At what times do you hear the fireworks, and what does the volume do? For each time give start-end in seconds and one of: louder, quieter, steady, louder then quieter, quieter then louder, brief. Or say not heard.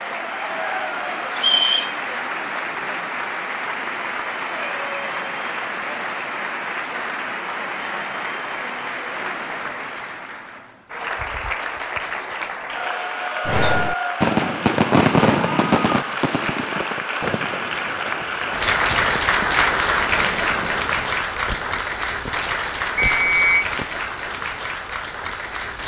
13.4-24.1 quieter.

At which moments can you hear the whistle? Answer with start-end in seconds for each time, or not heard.
1.4-1.9, 22.9-23.5.